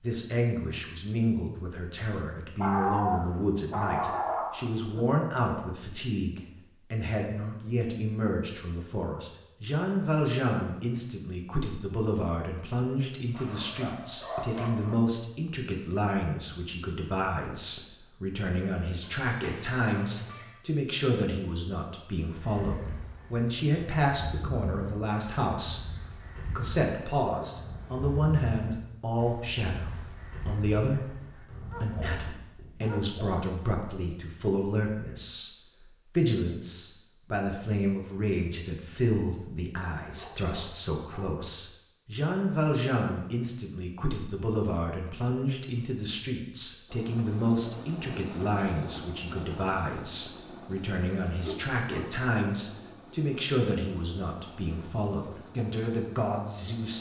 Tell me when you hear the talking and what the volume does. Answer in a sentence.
You can hear the talking from 0.0 to 56.9 s, at a steady volume.